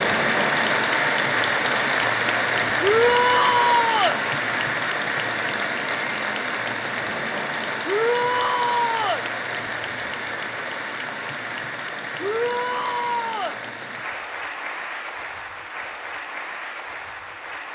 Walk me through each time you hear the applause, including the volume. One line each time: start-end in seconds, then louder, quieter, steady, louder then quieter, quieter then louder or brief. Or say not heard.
0.0-17.6 quieter.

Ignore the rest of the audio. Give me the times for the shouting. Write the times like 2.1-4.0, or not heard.
2.8-4.2, 7.8-9.2, 12.2-13.6.